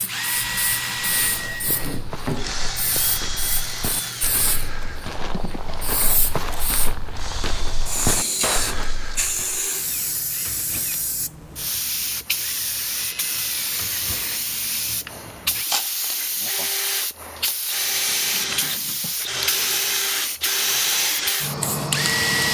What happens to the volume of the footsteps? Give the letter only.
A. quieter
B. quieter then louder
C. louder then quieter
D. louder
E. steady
D.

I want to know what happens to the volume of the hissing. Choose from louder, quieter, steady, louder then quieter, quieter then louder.
louder.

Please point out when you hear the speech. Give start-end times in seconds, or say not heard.
not heard.